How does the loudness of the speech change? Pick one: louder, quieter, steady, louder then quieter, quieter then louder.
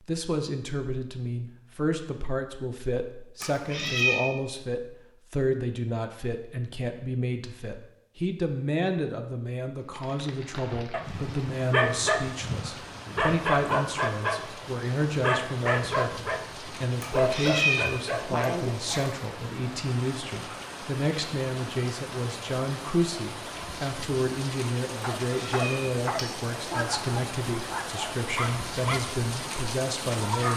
steady.